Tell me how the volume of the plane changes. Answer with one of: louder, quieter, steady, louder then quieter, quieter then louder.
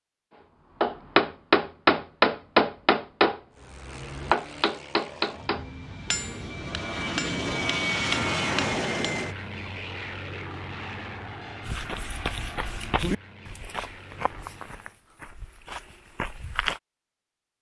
louder then quieter.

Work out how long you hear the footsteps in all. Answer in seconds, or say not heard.
5 s.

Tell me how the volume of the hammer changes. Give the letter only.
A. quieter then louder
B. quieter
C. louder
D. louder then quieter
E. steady
B.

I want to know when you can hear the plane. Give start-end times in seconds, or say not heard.
3.5-15.0.